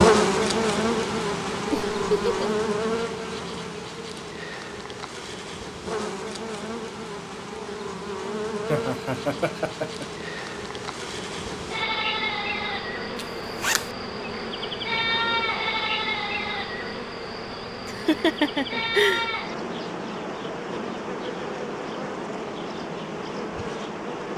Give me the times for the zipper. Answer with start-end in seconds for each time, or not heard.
13.2-13.9.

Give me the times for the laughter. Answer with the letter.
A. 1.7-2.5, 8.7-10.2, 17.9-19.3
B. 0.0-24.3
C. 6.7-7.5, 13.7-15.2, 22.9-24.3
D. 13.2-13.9
A.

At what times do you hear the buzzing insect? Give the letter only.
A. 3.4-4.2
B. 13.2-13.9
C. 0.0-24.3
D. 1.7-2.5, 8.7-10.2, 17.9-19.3
C.